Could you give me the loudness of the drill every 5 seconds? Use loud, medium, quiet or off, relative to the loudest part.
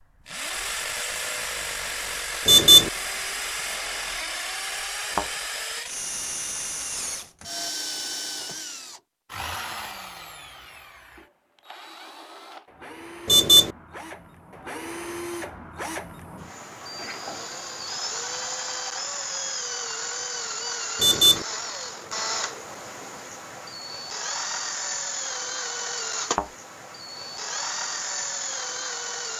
loud, loud, medium, loud, loud, loud.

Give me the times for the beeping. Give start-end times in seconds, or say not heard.
2.5-2.9, 13.2-13.7, 21.0-21.4.